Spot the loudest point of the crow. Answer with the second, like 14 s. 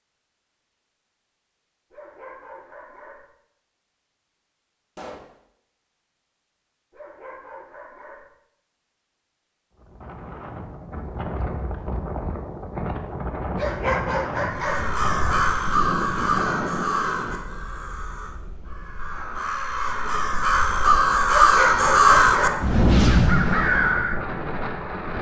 22 s.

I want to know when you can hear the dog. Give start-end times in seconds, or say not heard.
1.9-3.3, 6.9-8.3, 13.6-14.9, 21.2-22.7.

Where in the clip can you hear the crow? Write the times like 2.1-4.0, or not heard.
14.6-24.1.